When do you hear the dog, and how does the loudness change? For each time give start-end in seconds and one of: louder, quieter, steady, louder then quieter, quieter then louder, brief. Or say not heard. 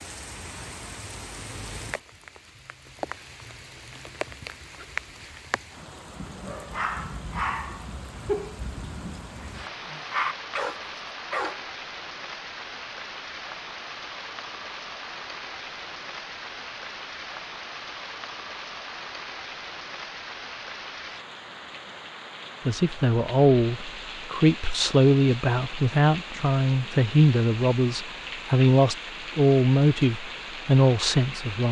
6.2-11.7 quieter then louder.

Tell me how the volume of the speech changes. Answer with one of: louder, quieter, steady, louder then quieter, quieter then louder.
steady.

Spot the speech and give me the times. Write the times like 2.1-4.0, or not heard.
22.6-31.6.